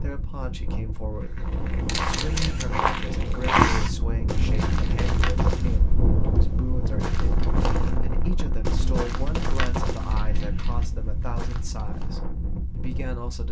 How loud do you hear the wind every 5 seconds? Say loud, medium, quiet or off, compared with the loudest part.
loud, loud, medium.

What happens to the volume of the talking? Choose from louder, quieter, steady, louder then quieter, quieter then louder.
steady.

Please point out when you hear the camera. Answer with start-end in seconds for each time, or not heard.
1.9-2.6, 4.5-5.0, 10.1-10.9.